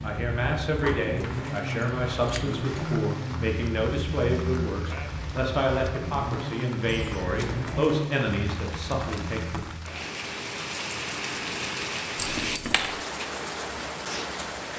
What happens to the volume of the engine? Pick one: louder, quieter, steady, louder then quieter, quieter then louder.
quieter.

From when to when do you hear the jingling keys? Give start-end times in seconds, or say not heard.
0.8-2.6, 6.8-8.0, 12.2-12.9.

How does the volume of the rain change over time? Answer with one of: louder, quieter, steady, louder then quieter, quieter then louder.
louder.